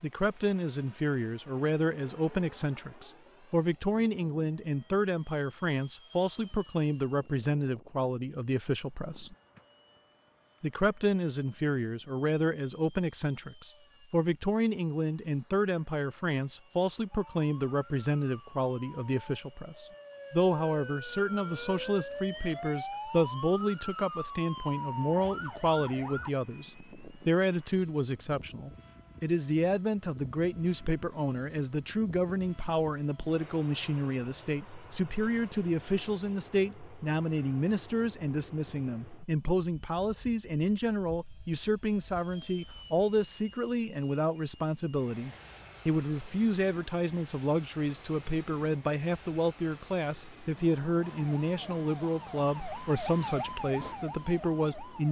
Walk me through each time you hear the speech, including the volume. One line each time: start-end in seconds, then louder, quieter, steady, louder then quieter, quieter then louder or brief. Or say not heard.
0.0-9.3 steady
10.6-55.0 steady.